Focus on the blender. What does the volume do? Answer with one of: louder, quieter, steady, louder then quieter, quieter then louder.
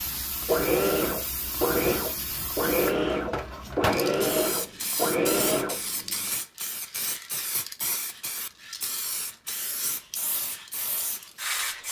steady.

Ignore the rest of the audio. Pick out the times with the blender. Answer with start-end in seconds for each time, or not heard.
0.1-6.3.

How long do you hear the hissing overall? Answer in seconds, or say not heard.
12 s.